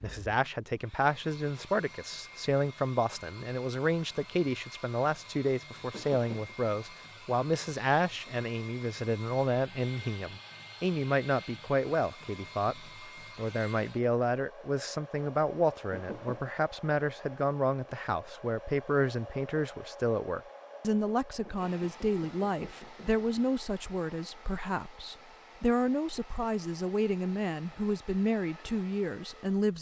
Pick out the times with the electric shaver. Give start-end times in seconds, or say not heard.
not heard.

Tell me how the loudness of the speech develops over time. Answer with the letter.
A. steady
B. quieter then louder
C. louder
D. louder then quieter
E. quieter
A.